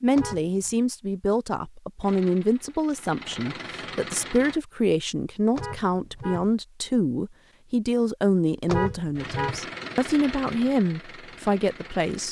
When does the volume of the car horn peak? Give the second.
9 s.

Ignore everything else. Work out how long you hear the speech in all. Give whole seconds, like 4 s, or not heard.
12 s.